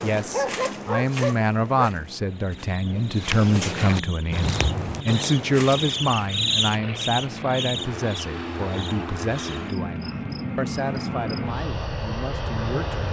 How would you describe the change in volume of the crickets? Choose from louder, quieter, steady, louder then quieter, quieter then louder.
louder then quieter.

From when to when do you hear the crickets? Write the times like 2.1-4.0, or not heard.
2.2-13.0.